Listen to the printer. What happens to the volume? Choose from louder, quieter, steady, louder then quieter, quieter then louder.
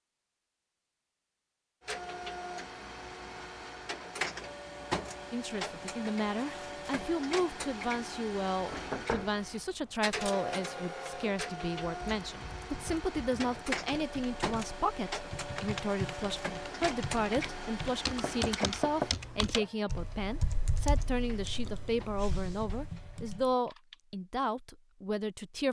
quieter.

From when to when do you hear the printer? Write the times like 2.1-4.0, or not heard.
1.9-23.4.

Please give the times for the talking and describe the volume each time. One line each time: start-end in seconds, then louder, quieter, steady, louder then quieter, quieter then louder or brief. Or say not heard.
5.3-25.6 steady.